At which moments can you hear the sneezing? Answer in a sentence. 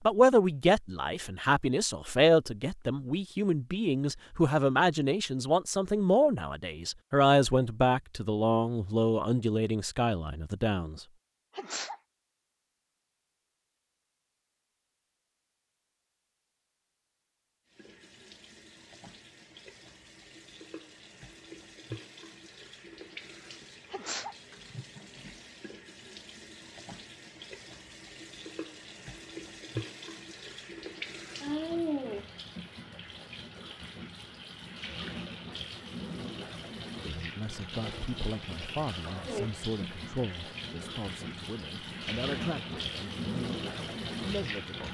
The sneezing can be heard from 11.5 to 12.0 s and from 23.9 to 24.4 s.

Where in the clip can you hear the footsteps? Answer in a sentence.
The footsteps can't be heard in this clip.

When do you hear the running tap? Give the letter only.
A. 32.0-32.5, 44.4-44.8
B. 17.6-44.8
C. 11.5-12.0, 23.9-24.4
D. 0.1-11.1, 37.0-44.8
B.